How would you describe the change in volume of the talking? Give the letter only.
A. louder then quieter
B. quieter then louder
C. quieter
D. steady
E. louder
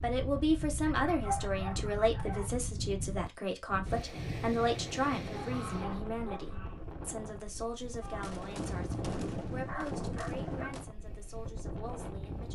C.